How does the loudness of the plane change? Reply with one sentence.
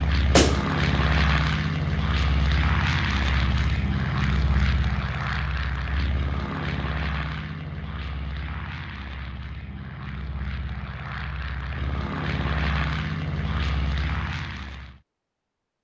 The volume of the plane goes down, then up.